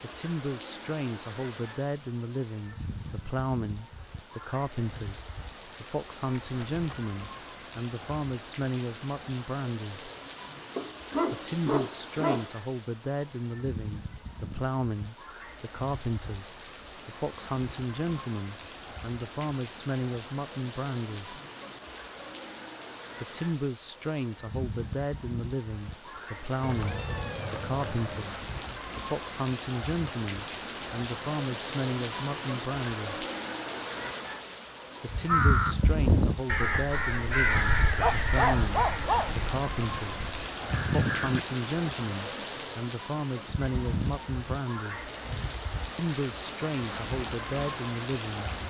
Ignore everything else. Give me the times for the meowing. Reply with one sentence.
The meowing can be heard from 6.4 to 7.1 s and from 26.6 to 28.4 s.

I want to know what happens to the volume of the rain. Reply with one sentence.
The volume of the rain goes up.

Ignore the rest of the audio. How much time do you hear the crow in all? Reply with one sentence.
You can hear the crow for 6 seconds altogether.